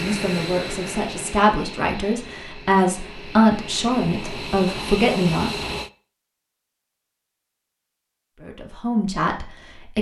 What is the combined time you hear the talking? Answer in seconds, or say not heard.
7 s.